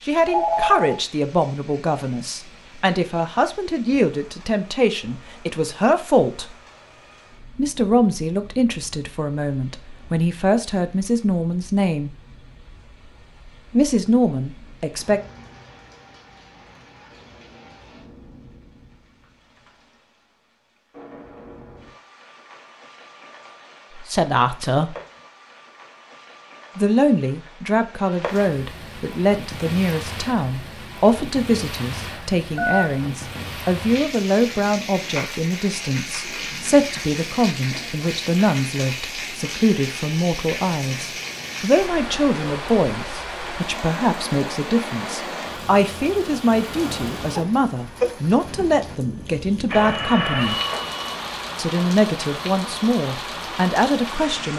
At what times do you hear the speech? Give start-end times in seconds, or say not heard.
0.1-6.5, 7.5-12.1, 13.7-15.2, 23.9-24.9, 26.8-50.6, 51.5-54.5.